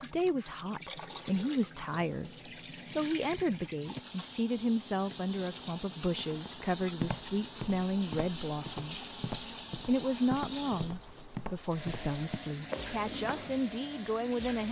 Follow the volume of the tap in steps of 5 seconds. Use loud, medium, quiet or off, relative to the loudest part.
medium, loud, loud.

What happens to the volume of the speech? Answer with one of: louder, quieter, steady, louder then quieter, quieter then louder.
steady.